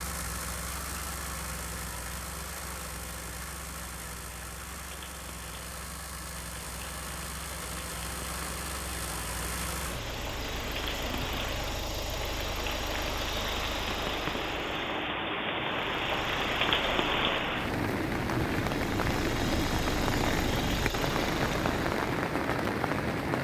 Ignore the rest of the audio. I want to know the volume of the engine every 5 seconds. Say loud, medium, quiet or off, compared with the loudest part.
loud, loud, loud, medium, loud.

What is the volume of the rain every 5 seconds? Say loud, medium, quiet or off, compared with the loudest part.
quiet, quiet, medium, loud, loud.